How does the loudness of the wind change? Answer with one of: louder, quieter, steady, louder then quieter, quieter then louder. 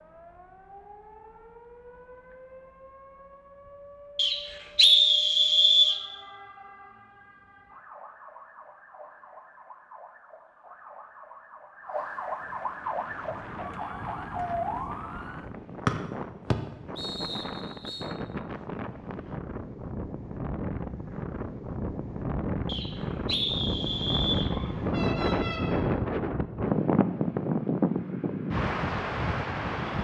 louder.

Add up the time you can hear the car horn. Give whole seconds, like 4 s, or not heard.
2 s.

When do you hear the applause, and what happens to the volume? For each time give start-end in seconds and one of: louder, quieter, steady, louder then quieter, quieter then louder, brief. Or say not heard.
not heard.